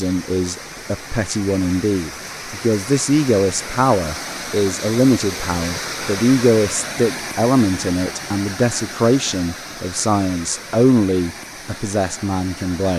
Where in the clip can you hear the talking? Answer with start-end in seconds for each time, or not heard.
0.0-12.9.